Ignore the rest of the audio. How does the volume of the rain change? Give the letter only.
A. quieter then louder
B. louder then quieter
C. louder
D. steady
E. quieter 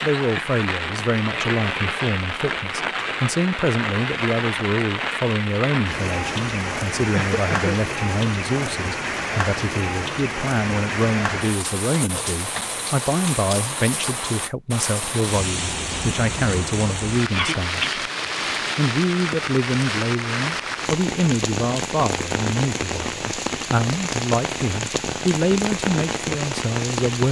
D.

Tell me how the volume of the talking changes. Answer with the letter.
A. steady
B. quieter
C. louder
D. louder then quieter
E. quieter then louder
A.